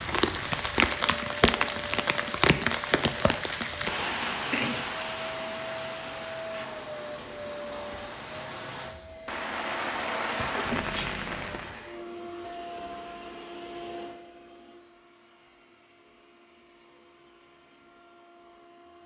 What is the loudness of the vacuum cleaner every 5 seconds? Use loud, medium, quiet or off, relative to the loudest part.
loud, loud, loud, quiet.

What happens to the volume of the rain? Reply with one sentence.
The volume of the rain goes down, then up.